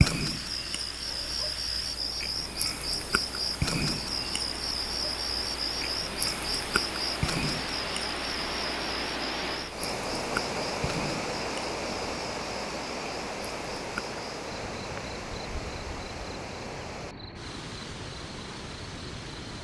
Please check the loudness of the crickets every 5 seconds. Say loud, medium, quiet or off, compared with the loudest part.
loud, loud, medium, quiet.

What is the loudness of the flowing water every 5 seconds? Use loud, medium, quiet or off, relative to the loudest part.
medium, loud, loud, medium.